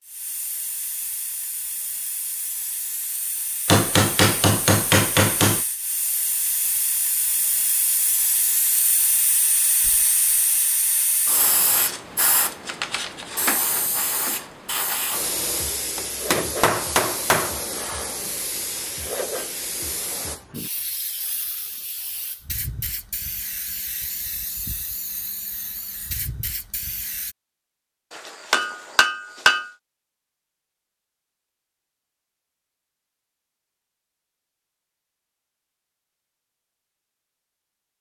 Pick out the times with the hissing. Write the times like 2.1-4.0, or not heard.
0.0-27.4.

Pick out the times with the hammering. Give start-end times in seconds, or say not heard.
3.6-5.7, 15.9-17.6, 28.1-29.7.